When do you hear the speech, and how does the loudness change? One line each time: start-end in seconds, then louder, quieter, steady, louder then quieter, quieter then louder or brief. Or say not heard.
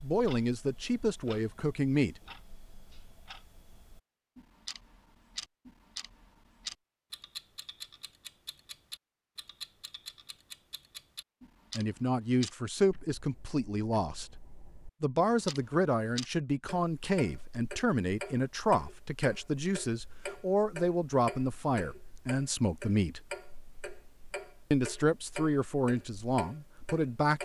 0.0-2.1 brief
11.8-14.3 brief
15.0-23.2 steady
24.7-27.4 brief.